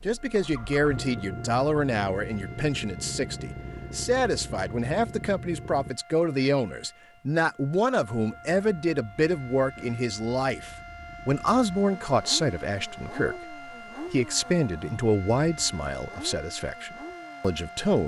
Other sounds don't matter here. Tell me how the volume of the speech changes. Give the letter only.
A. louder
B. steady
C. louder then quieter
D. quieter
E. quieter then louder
B.